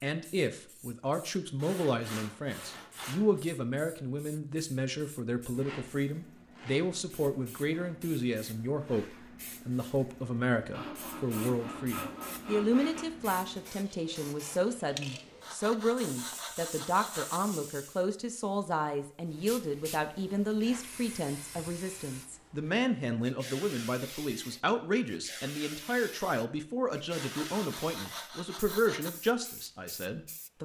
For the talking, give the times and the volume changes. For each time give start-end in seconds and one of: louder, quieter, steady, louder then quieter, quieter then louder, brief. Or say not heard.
0.0-30.6 steady.